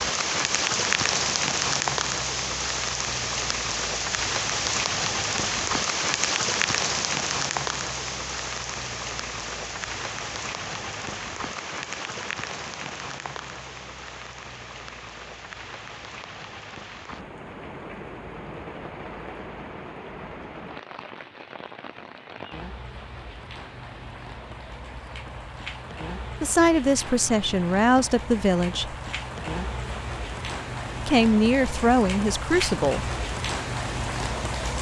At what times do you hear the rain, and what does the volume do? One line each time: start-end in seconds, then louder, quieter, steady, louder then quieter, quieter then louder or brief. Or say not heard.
0.0-34.7 quieter then louder.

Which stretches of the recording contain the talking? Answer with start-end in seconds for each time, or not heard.
26.4-28.9, 31.1-33.0.